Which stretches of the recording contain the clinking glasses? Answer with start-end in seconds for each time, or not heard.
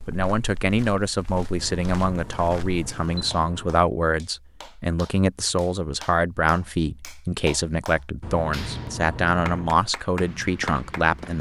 not heard.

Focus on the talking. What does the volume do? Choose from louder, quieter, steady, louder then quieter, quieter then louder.
steady.